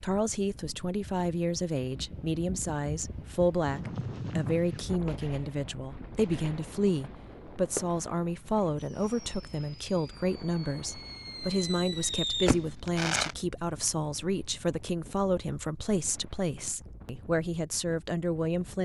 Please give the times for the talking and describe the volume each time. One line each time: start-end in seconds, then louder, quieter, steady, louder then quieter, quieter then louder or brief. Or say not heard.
0.0-18.8 steady.